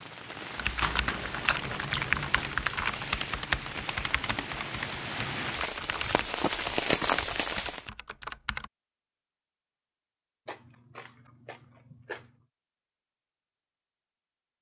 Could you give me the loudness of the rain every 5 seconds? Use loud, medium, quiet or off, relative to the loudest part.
medium, loud, off.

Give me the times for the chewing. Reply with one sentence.
You can hear the chewing from 0.8 to 2.5 s and from 10.4 to 12.4 s.